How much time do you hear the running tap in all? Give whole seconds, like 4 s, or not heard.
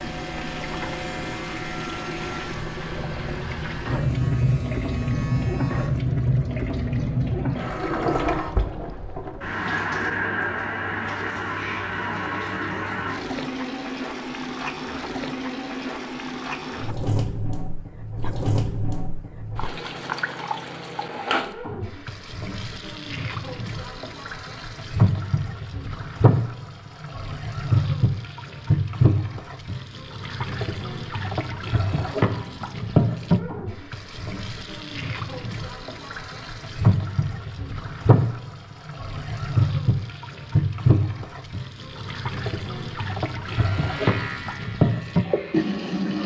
46 s.